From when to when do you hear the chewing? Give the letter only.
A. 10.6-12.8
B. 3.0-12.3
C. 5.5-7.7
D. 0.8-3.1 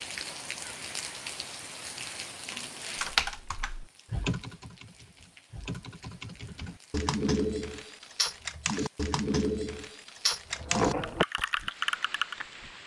A.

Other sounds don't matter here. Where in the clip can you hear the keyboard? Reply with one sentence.
The keyboard can be heard from 3.0 to 12.3 s.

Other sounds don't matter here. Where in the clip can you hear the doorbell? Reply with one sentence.
You can't hear the doorbell here.